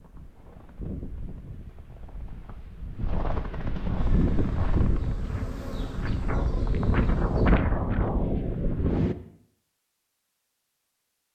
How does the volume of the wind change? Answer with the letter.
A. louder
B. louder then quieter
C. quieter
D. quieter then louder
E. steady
A.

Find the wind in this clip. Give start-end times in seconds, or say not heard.
0.0-9.2.